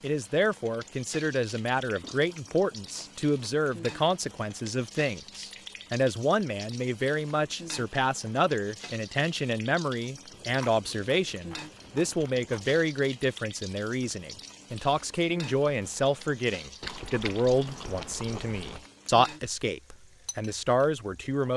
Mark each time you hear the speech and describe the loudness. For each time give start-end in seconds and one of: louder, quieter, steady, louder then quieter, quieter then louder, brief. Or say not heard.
0.0-21.5 steady.